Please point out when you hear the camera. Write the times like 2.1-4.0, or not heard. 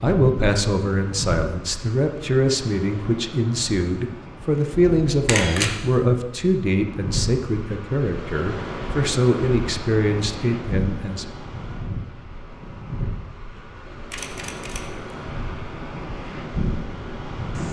4.9-5.8, 14.1-15.2.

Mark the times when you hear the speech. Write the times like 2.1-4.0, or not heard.
0.0-11.2.